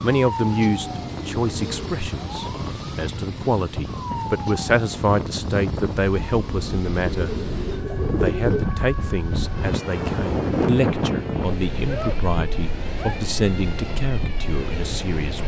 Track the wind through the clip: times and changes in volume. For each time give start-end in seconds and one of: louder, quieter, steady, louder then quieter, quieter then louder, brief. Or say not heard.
0.0-15.4 louder then quieter.